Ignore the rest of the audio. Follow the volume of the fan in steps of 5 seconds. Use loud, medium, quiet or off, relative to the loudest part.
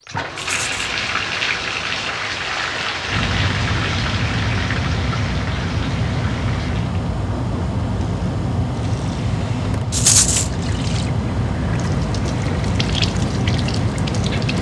medium, loud, loud.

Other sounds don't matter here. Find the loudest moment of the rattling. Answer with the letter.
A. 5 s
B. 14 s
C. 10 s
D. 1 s
C.